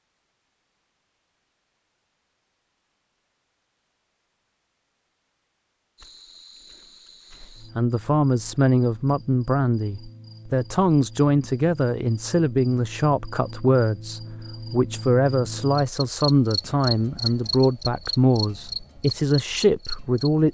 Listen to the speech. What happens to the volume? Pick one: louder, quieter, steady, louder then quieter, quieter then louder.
steady.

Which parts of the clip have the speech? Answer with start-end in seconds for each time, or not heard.
7.4-20.4.